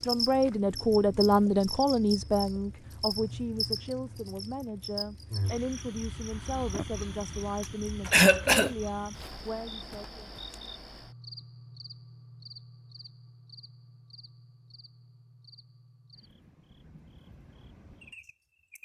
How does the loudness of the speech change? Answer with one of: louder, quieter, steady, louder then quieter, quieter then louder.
quieter.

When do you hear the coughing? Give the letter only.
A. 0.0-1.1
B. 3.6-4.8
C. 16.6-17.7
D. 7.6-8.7
D.